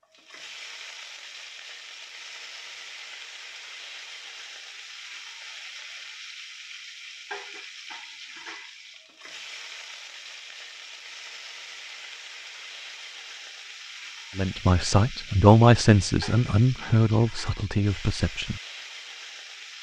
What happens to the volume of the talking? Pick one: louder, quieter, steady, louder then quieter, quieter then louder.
louder then quieter.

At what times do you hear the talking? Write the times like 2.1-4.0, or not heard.
14.3-18.6.